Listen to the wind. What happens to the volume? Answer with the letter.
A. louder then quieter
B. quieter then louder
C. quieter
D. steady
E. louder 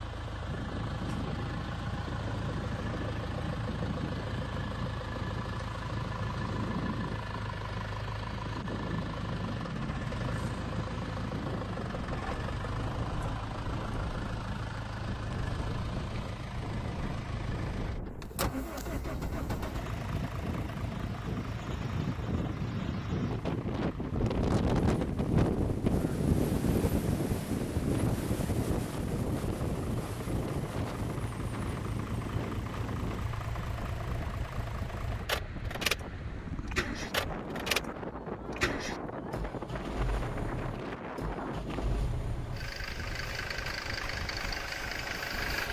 A.